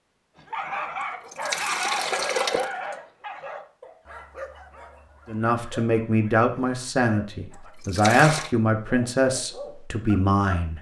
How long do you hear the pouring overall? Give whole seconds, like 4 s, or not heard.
2 s.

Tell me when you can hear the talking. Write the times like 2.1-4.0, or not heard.
5.2-10.7.